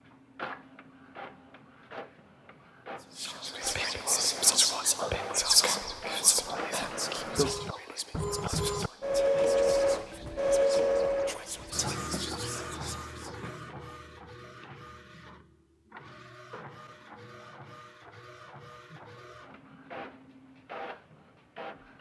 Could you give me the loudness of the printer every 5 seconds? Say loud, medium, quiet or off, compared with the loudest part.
quiet, loud, loud, quiet, quiet.